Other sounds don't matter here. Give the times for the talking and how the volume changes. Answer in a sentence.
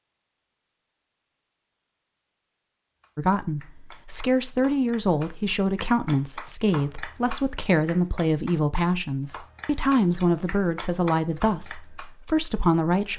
The talking can be heard from 3.1 to 13.1 s, at a steady volume.